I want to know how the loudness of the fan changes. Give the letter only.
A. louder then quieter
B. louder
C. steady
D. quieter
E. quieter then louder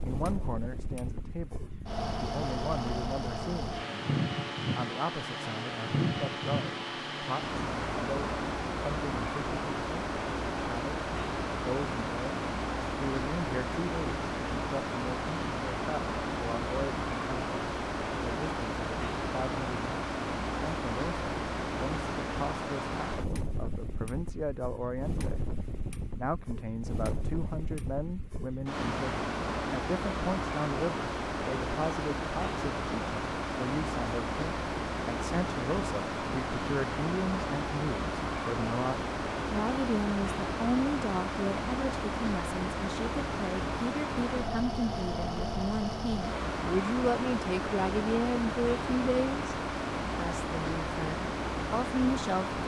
C.